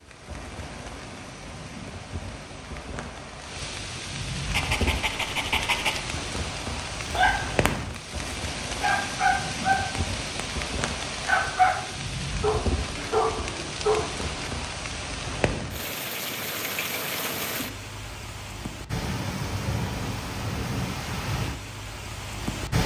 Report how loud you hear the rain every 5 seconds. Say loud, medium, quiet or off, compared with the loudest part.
medium, loud, loud, loud, loud.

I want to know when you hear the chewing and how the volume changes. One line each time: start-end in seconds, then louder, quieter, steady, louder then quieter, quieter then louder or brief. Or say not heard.
not heard.